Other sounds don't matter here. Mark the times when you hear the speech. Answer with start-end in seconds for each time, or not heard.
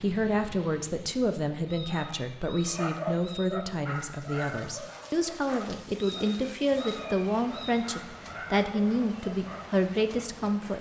0.0-10.7.